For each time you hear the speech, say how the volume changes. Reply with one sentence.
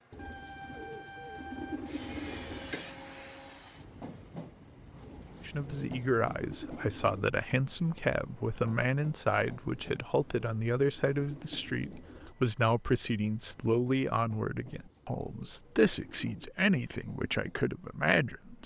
You can hear the speech from 5.5 to 18.6 s, at a steady volume.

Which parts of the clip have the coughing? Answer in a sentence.
The coughing can be heard from 2.7 to 3.5 s.